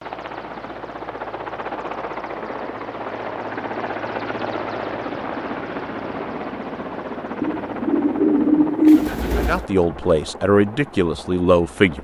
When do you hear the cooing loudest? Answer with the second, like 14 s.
9 s.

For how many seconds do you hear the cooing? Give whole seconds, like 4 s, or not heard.
2 s.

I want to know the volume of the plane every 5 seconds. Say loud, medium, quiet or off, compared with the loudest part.
loud, loud, medium.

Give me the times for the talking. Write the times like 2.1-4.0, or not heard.
9.3-11.9.